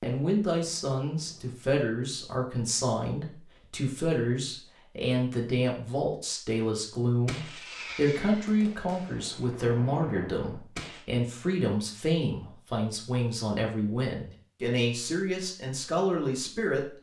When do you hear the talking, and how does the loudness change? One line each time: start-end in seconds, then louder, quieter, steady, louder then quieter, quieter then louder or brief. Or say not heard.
0.0-16.9 steady.